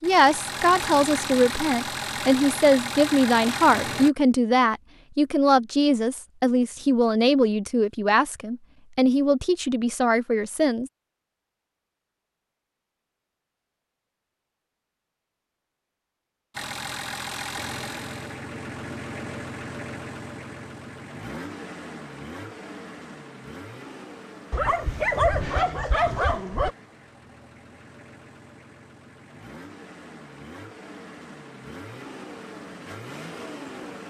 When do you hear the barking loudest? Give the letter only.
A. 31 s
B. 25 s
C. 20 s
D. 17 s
B.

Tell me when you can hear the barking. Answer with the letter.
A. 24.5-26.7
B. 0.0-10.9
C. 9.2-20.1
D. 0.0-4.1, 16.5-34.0
A.